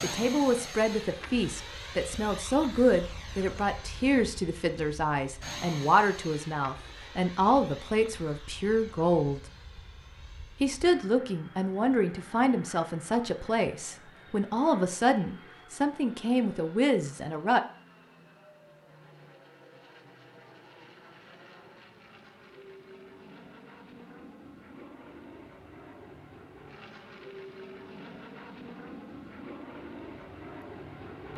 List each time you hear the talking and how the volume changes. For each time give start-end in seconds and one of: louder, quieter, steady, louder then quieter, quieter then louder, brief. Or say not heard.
0.0-9.4 steady
10.6-17.6 steady.